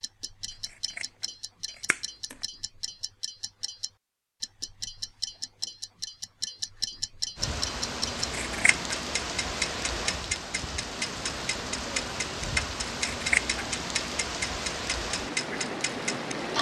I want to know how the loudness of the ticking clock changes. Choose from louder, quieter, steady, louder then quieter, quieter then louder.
louder.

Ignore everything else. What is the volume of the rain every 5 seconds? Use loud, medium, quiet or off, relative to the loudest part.
off, loud, loud, loud.